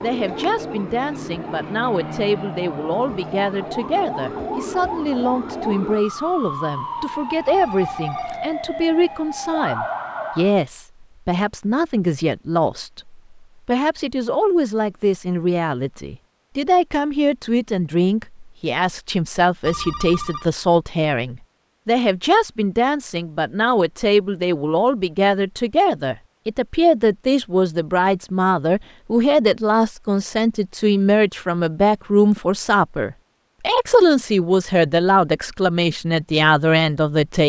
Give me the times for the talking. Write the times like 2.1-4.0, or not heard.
0.0-37.4.